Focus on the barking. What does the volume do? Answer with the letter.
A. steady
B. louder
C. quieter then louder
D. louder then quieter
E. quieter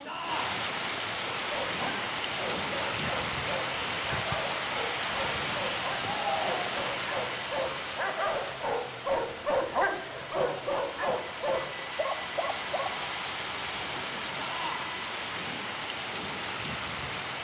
B.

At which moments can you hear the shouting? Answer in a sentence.
You can hear the shouting from 0.1 to 0.6 s, from 6.0 to 6.7 s and from 14.3 to 14.9 s.